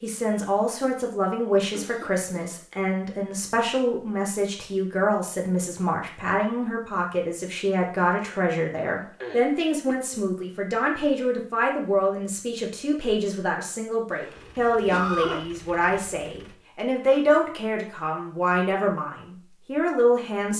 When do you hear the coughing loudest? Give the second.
15 s.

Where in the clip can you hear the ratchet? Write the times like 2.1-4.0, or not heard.
not heard.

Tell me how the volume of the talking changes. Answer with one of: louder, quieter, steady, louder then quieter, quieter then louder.
steady.